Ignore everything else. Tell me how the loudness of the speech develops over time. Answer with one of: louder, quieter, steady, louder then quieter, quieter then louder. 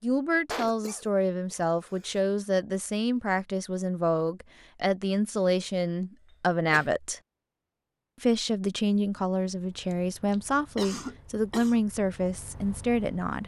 steady.